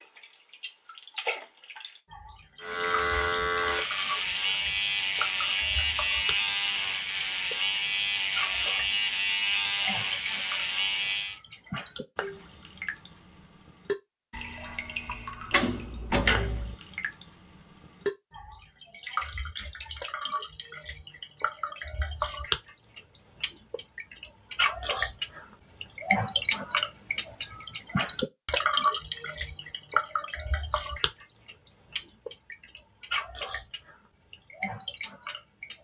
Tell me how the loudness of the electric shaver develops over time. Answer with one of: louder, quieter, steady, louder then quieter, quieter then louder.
steady.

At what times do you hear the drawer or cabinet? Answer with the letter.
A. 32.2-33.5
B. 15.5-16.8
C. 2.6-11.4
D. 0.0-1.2
B.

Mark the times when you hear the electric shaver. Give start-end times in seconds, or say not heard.
2.6-11.4.